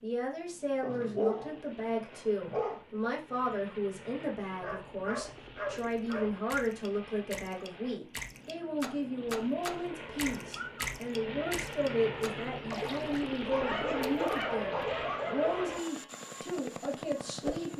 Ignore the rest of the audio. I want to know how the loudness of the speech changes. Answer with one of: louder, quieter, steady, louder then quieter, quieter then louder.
steady.